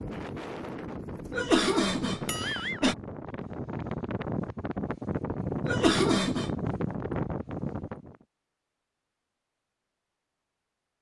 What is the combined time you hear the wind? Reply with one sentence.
You can hear the wind for 8 seconds altogether.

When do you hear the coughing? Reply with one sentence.
You can hear the coughing from 1.3 to 3.0 s and from 5.7 to 6.5 s.